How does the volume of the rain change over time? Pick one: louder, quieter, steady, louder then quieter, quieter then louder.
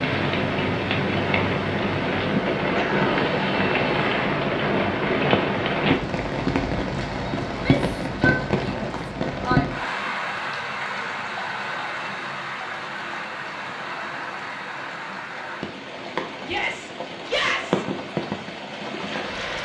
quieter.